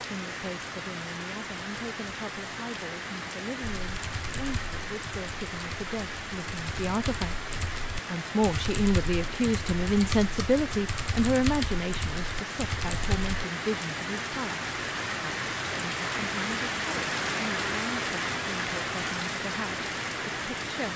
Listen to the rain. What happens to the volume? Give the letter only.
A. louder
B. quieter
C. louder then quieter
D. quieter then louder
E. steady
A.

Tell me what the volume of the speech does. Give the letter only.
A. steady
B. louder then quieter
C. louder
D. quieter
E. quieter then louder
B.